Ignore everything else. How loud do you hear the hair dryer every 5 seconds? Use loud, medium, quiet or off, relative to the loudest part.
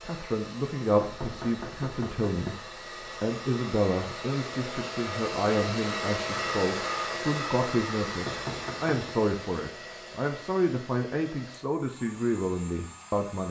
medium, loud, quiet.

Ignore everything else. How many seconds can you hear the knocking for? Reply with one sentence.
You can hear the knocking for 2 seconds altogether.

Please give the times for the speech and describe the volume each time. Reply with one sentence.
You can hear the speech briefly from 0.1 to 2.5 s; and from 3.2 to 13.4 s, at a steady volume.